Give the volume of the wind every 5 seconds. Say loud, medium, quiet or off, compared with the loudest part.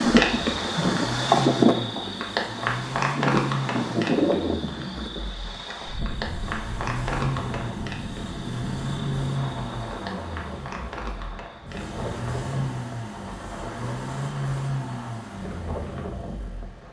loud, quiet, quiet, quiet.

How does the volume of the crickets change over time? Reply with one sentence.
The loudness of the crickets goes down.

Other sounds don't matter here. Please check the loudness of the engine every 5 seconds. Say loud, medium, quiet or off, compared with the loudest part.
loud, loud, loud, medium.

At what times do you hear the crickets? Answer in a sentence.
You can hear the crickets from 0.0 to 12.0 s.